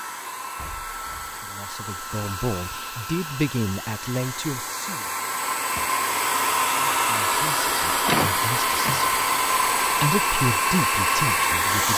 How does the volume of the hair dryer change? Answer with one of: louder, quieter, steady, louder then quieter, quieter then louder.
louder.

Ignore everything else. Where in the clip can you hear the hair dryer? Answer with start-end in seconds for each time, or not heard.
0.0-11.9.